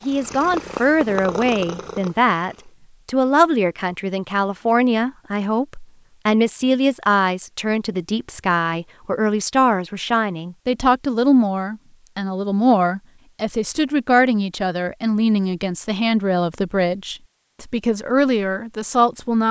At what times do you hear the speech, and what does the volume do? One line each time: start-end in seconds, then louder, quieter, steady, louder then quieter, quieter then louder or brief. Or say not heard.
0.1-19.4 steady.